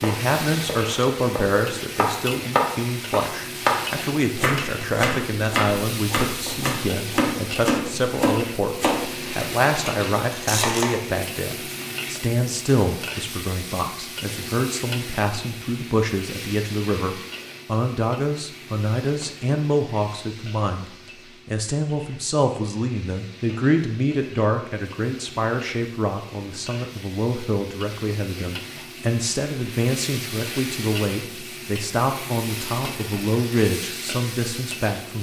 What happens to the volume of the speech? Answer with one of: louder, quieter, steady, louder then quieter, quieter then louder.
steady.